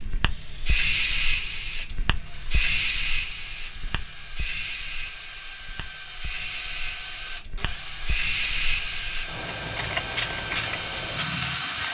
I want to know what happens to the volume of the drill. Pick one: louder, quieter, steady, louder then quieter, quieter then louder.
louder.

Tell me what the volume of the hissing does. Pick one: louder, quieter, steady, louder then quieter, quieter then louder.
quieter then louder.